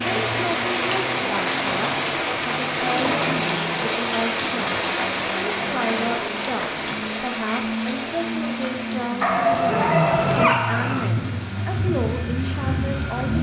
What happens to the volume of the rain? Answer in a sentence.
The loudness of the rain goes down.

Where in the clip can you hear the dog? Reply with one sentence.
You can hear the dog from 9.2 to 11.1 s.